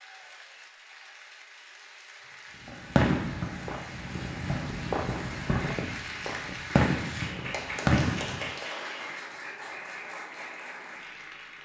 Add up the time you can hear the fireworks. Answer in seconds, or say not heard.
6 s.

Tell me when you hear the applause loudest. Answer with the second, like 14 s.
8 s.